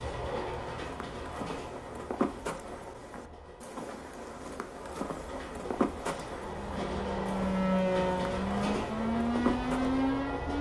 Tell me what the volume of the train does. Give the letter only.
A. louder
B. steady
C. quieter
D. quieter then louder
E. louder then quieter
D.